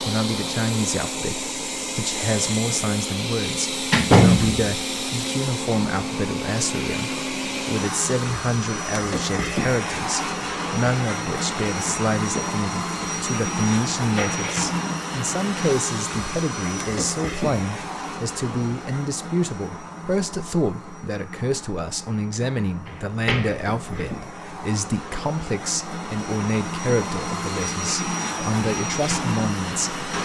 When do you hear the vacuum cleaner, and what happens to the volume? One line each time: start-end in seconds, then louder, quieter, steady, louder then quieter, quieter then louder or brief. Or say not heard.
0.0-30.1 quieter then louder.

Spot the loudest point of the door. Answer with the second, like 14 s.
4 s.